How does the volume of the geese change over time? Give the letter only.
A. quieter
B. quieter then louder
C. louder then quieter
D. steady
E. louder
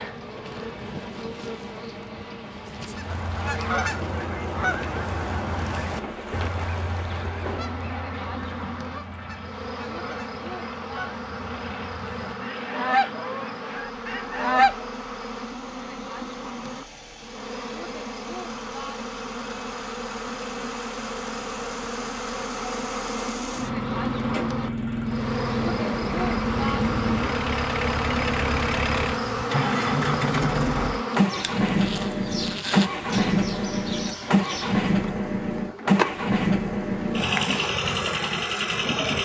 B.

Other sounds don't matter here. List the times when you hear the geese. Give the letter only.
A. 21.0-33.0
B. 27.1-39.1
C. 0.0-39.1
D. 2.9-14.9
D.